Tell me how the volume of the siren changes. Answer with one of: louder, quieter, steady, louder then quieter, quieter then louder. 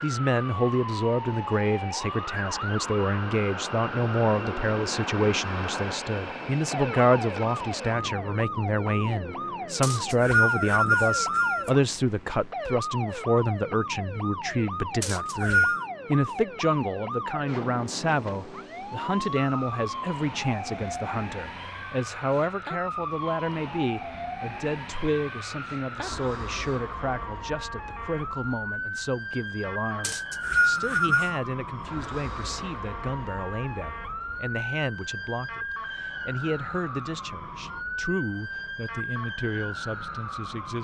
steady.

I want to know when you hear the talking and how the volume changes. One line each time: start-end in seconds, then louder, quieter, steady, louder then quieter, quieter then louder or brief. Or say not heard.
0.0-40.7 quieter.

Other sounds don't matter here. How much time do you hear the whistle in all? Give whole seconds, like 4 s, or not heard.
4 s.